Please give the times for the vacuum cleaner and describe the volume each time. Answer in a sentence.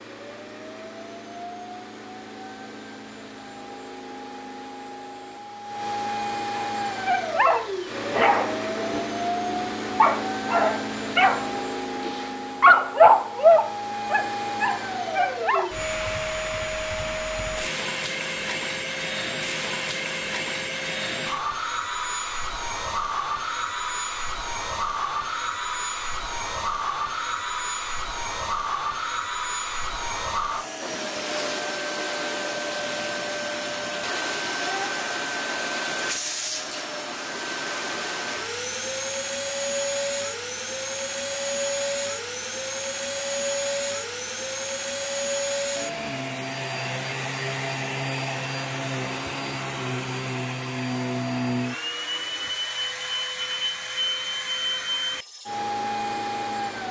You can hear the vacuum cleaner from 0.0 to 56.8 s, at a steady volume.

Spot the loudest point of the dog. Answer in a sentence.
The loudest moment of the dog is at 13 seconds.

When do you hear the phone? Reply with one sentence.
The phone can't be heard in this clip.